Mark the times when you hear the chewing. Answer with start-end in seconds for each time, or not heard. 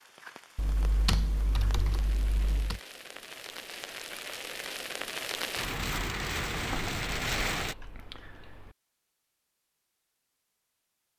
not heard.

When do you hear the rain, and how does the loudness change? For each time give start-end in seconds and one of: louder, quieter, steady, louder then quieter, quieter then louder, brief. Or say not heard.
0.0-7.8 louder.